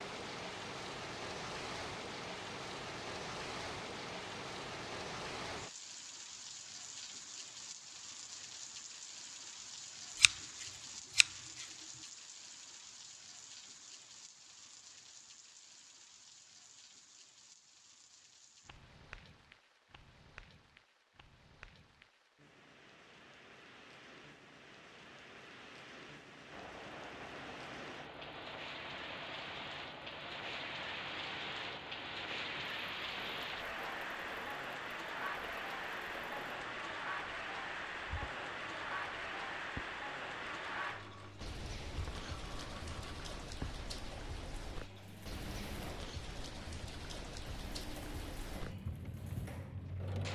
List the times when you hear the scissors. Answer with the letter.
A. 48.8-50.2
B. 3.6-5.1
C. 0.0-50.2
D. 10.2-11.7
D.